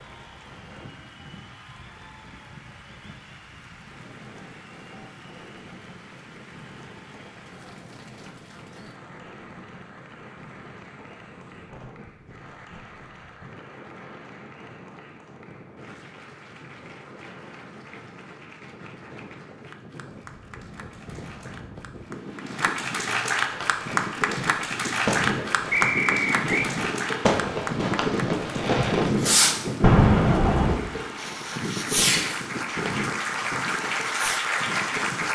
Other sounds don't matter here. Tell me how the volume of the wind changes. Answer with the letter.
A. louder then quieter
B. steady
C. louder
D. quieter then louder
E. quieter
C.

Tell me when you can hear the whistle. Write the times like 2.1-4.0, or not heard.
25.7-26.7.